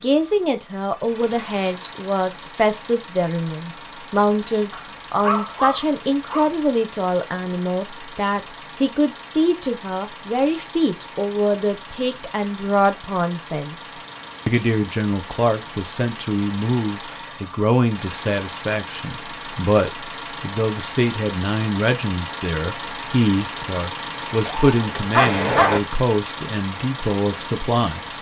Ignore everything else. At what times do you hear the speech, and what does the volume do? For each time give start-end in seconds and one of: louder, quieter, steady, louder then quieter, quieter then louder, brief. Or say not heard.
0.0-28.1 steady.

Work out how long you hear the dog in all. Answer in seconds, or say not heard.
3 s.